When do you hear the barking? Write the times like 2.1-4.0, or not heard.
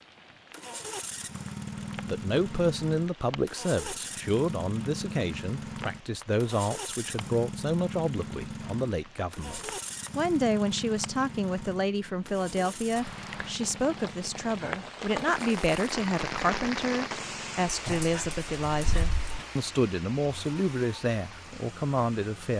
17.9-19.4.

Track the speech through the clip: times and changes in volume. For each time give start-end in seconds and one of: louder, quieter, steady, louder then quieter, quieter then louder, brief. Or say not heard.
2.0-22.5 steady.